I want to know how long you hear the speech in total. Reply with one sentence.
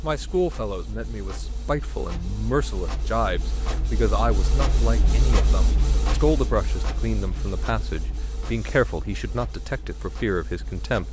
The speech can be heard for 11 seconds in total.